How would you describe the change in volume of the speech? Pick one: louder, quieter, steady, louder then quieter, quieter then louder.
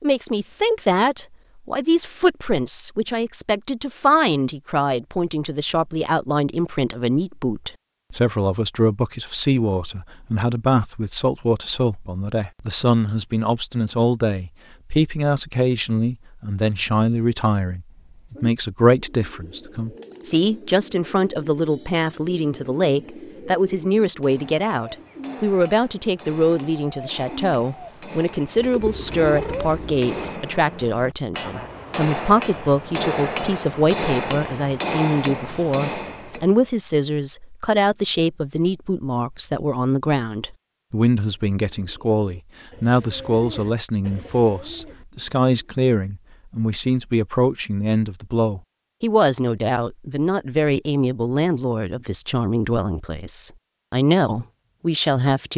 steady.